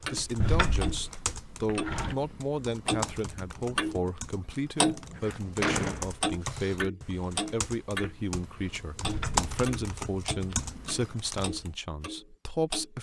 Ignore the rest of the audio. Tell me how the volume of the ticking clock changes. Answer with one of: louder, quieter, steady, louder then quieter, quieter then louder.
louder then quieter.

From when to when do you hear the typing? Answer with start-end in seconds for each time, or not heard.
0.0-11.7.